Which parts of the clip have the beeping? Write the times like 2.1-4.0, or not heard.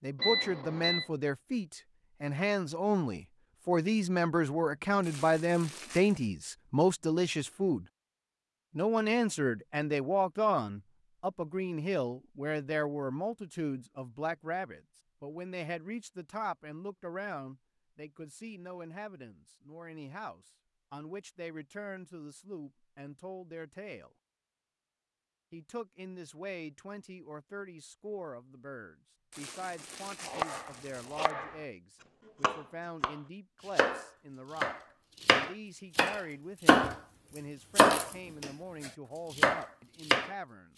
0.2-1.1.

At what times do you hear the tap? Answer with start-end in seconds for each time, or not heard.
not heard.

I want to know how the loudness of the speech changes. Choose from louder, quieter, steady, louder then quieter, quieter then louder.
quieter.